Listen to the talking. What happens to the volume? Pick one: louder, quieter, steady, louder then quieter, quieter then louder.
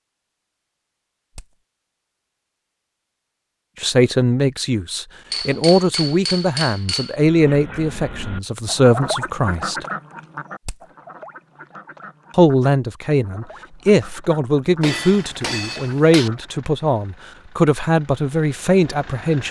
steady.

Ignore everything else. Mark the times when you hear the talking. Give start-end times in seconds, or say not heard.
3.8-9.8, 12.3-19.4.